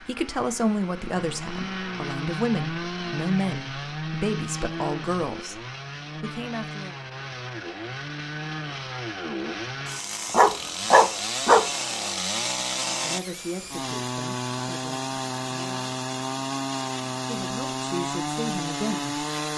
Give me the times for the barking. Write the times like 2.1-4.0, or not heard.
10.3-11.7.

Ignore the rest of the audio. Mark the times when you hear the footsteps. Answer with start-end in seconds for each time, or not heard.
not heard.